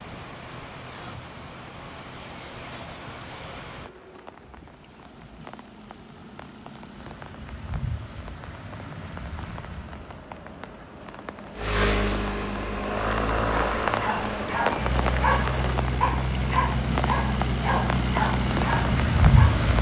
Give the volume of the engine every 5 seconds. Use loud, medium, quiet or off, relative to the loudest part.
off, off, loud, loud.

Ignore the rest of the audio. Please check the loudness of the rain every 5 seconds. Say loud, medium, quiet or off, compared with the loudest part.
quiet, quiet, medium, loud.